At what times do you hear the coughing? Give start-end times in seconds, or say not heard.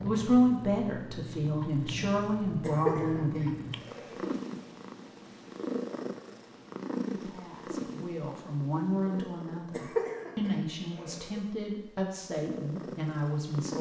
2.6-4.3, 9.7-11.4.